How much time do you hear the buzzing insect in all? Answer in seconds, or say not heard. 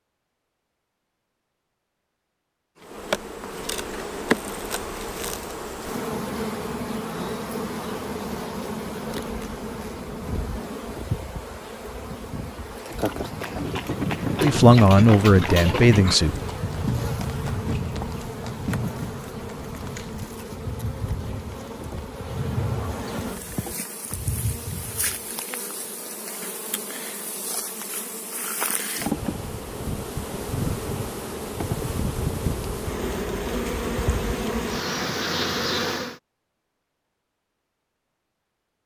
33 s.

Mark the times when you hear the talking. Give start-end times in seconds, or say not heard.
14.4-16.4.